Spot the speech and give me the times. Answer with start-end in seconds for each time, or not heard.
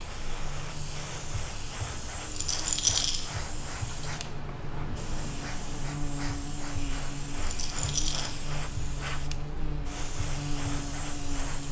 not heard.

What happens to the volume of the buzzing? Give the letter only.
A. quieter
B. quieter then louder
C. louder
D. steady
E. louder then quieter
C.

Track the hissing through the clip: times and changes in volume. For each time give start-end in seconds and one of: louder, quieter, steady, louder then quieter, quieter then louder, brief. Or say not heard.
0.0-11.6 steady.